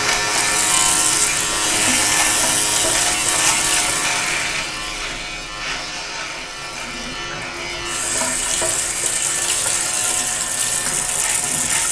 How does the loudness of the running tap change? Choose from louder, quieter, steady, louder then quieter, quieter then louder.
quieter then louder.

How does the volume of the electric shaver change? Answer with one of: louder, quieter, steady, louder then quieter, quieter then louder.
quieter.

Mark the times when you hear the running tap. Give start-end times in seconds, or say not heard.
0.2-11.8.